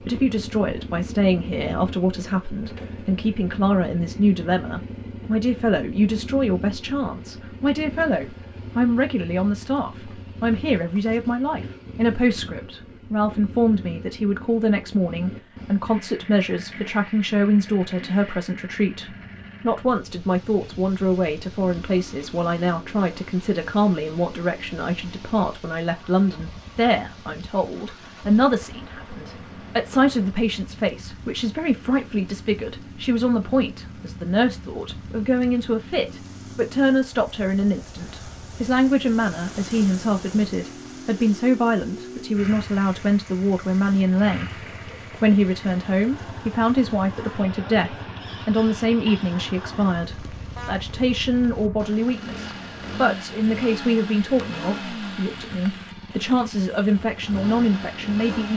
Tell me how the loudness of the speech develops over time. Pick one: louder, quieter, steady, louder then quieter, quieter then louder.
steady.